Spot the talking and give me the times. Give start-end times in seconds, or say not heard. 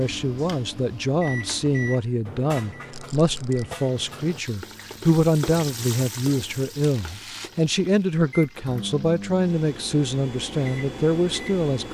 0.0-11.8.